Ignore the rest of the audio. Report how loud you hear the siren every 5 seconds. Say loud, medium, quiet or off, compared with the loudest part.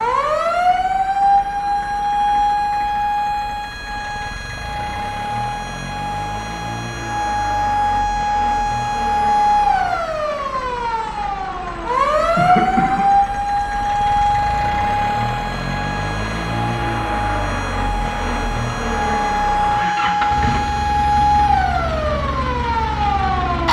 loud, loud, loud, medium, loud.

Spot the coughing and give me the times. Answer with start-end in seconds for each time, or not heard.
12.3-13.1.